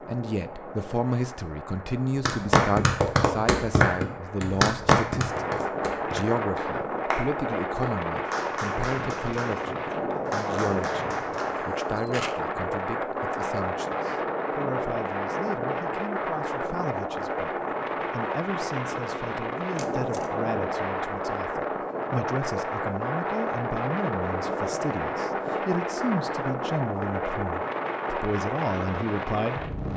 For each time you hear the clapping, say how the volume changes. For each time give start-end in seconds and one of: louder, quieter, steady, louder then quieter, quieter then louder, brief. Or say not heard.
2.2-11.6 quieter.